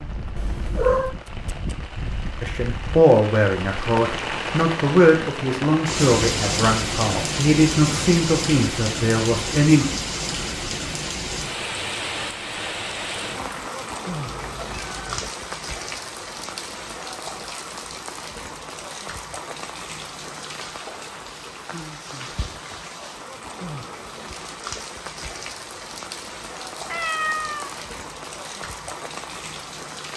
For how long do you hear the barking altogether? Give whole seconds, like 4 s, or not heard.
not heard.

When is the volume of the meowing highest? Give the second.
1 s.